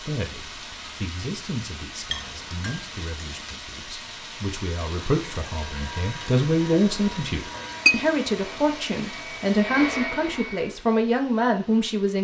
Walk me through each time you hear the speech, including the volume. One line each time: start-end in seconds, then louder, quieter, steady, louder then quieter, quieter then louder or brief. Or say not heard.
0.0-12.1 louder.